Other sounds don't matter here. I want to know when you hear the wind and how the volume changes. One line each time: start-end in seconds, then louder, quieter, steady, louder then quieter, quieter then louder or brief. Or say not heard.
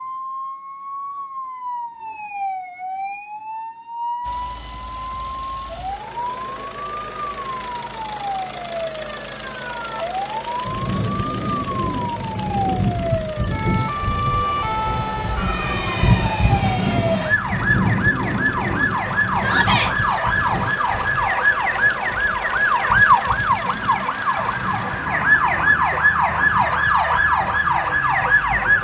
10.7-28.7 quieter.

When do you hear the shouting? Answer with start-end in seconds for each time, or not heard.
19.4-19.9.